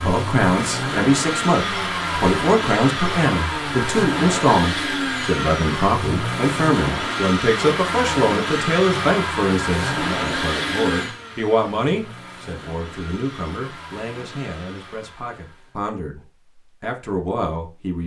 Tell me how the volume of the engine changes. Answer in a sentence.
The loudness of the engine goes down.